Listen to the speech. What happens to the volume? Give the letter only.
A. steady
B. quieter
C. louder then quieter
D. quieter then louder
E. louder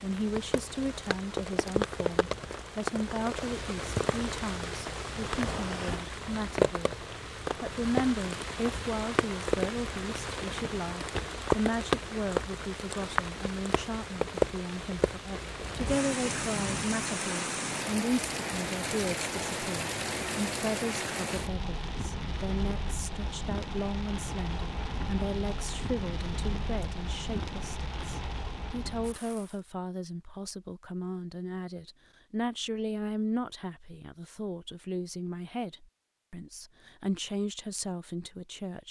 A.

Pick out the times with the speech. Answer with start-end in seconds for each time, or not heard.
0.0-38.8.